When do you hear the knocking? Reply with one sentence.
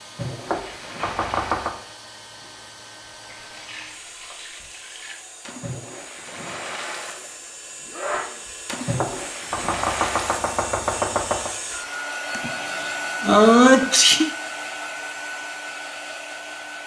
The knocking can be heard from 0.5 to 1.8 s and from 8.9 to 11.5 s.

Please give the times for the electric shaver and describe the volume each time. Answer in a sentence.
You can't hear the electric shaver here.